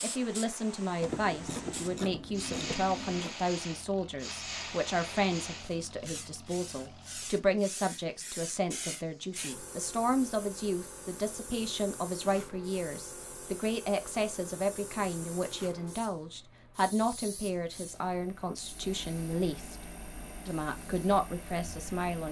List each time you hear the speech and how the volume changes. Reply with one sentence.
The speech can be heard from 0.0 to 19.8 s, at a steady volume; and briefly from 20.4 to 22.2 s.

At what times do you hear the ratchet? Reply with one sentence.
You can hear the ratchet from 1.0 to 3.4 s.